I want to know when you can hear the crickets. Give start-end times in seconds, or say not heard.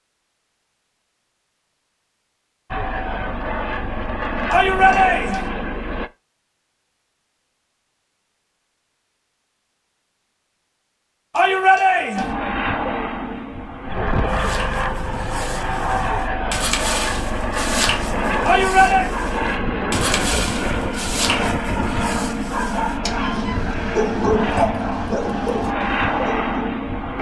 not heard.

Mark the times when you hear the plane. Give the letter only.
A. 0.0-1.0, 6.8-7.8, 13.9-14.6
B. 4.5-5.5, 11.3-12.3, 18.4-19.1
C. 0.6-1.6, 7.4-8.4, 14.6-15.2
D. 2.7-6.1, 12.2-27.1
D.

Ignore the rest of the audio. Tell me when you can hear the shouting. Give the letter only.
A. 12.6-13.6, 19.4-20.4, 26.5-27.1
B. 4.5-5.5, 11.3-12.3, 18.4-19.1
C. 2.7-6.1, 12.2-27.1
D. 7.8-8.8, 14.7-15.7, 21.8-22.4
B.